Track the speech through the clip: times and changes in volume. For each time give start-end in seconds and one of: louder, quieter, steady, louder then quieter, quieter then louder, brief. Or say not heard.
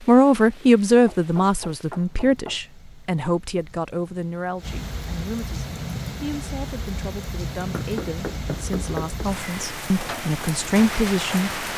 0.0-11.5 quieter then louder.